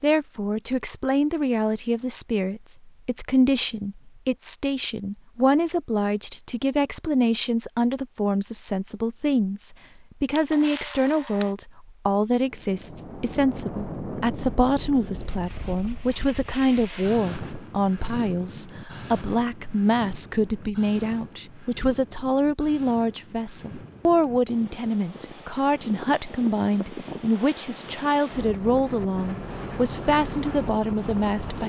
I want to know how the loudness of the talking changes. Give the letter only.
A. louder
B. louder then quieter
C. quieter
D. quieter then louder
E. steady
E.